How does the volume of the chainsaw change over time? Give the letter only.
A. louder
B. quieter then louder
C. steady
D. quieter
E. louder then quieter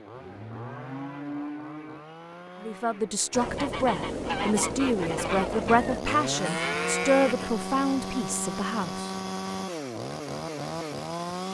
A.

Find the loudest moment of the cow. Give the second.
7 s.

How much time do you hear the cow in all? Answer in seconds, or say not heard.
3 s.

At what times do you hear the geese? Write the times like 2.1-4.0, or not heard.
3.3-6.0.